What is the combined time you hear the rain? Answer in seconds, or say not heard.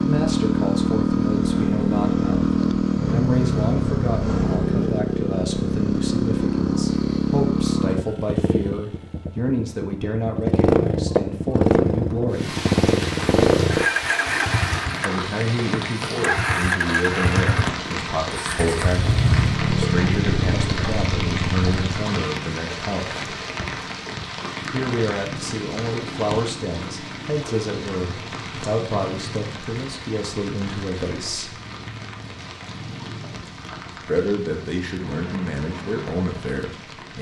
25 s.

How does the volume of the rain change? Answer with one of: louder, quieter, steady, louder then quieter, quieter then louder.
quieter.